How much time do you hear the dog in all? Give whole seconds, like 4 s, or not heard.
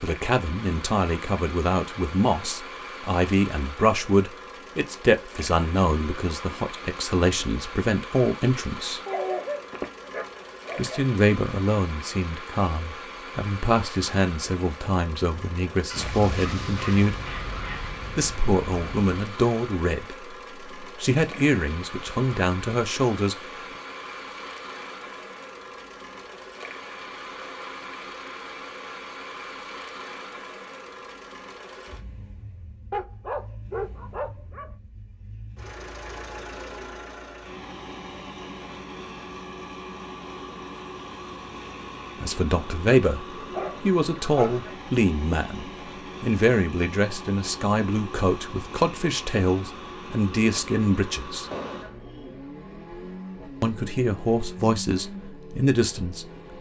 7 s.